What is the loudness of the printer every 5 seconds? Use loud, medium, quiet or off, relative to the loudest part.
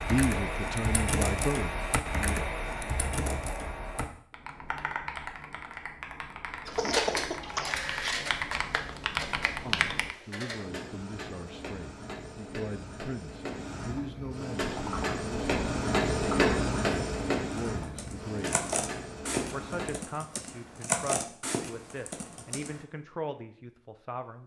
off, medium, medium, loud, off.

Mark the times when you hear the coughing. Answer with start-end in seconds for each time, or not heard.
6.8-7.8.